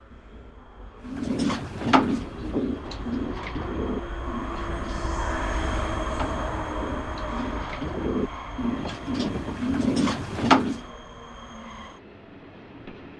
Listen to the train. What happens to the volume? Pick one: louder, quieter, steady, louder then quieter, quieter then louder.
louder then quieter.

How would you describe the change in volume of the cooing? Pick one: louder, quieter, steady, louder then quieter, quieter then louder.
quieter then louder.